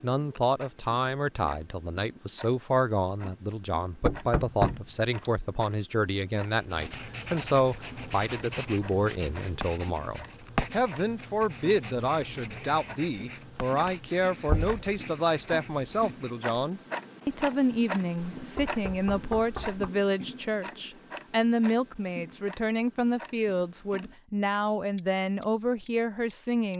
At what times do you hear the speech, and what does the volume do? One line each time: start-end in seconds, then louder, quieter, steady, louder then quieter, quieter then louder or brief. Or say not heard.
0.0-26.7 steady.